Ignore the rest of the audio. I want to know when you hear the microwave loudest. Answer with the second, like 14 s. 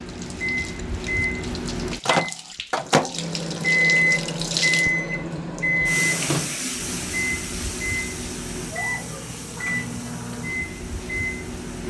4 s.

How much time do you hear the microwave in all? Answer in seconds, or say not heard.
12 s.